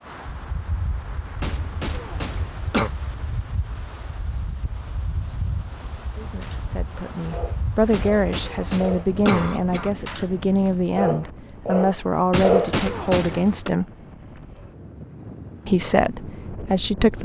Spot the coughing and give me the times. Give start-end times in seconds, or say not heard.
1.4-2.9, 7.9-9.9, 12.3-13.7.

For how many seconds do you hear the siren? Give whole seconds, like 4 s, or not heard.
not heard.